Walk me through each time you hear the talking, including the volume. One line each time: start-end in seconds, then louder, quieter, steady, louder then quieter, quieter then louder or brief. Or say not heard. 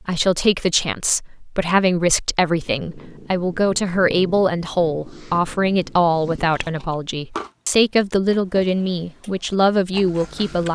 0.1-10.7 steady.